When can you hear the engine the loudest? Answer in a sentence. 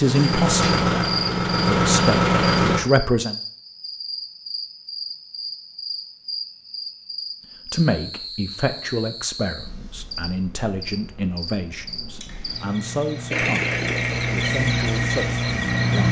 The loudest moment of the engine is at 2 seconds.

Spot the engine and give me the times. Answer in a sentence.
You can hear the engine from 0.0 to 2.8 s and from 13.3 to 16.0 s.